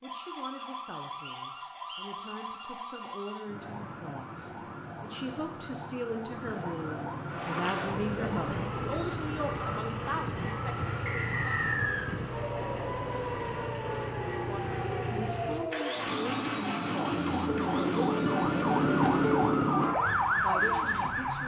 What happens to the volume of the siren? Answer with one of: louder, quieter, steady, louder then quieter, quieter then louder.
louder.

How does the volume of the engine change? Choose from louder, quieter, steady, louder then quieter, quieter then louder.
quieter.